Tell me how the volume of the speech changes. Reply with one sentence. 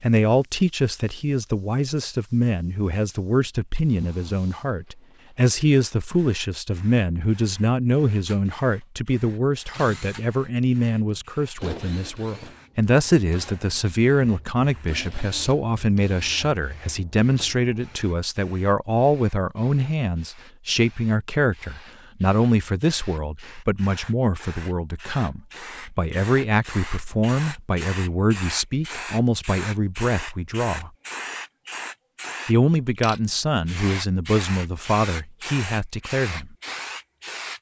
The loudness of the speech stays about the same.